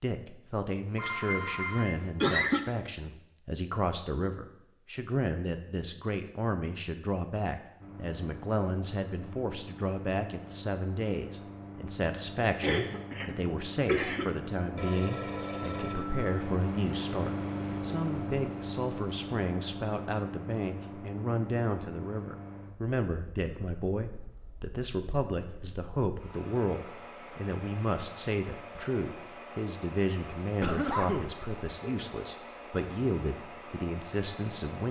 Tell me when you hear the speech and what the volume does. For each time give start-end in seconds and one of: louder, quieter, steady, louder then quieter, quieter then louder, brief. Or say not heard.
0.0-34.8 steady.